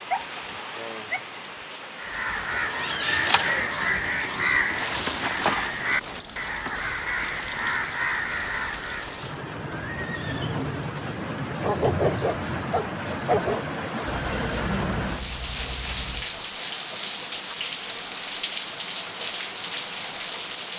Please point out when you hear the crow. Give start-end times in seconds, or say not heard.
1.9-9.4.